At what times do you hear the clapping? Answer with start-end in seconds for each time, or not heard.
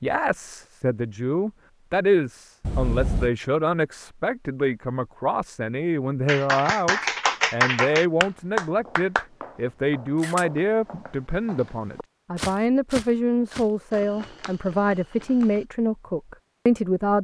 6.2-9.2.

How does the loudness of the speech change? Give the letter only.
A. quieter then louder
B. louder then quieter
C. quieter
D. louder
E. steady
E.